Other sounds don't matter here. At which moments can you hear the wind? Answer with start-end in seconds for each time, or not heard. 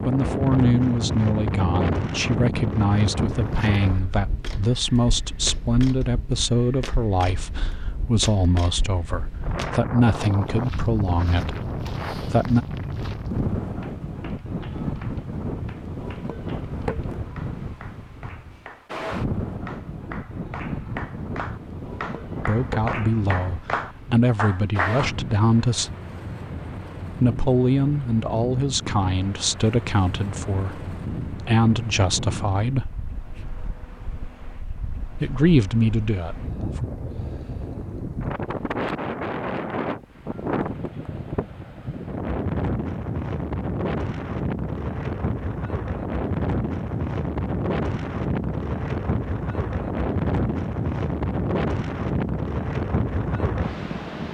0.0-54.3.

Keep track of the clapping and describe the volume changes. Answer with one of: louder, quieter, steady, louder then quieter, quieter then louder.
louder.